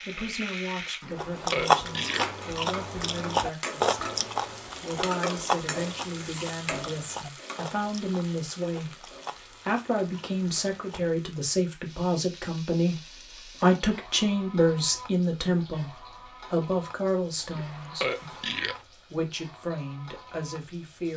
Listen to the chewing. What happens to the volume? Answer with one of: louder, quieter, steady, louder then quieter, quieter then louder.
quieter.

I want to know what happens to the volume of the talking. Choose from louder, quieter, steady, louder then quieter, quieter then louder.
louder then quieter.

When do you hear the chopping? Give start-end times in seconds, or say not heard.
not heard.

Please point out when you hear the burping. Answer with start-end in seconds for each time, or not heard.
1.0-2.4, 17.5-18.8.